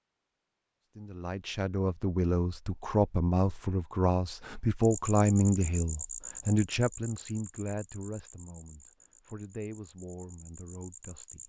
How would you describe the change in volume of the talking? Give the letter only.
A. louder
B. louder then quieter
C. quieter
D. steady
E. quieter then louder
C.